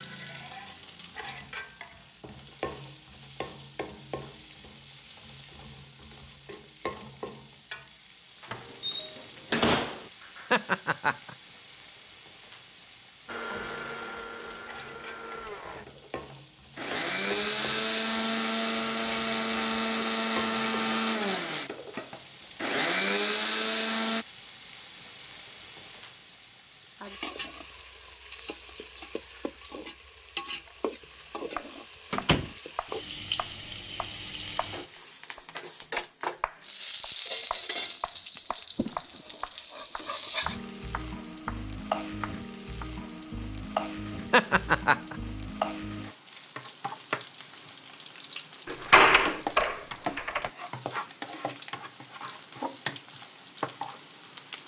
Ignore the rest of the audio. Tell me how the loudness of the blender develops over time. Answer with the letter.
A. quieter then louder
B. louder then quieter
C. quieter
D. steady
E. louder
E.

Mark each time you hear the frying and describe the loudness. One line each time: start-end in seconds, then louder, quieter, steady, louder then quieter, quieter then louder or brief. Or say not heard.
0.0-54.6 louder.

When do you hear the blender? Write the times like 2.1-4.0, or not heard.
13.2-24.2.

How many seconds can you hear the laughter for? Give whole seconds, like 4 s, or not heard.
2 s.